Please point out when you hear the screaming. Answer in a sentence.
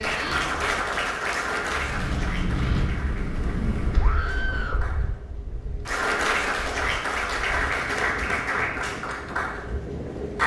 The screaming can be heard from 4.0 to 4.8 s.